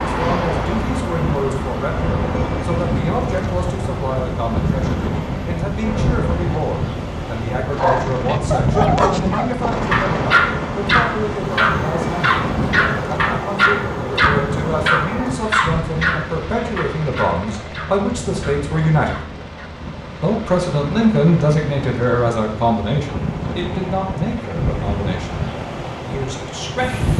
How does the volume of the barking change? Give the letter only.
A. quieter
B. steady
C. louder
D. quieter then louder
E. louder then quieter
A.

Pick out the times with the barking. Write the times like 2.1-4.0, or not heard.
7.8-19.4.